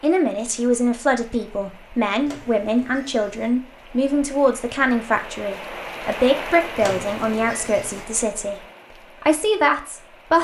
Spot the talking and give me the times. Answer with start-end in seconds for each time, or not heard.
0.0-8.6, 9.2-10.3.